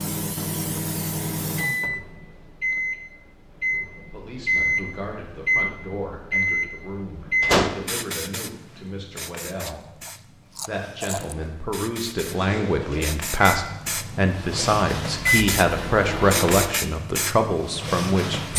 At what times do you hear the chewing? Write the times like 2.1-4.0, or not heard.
9.6-11.3.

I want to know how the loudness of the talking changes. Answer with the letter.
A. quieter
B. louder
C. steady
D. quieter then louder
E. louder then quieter
B.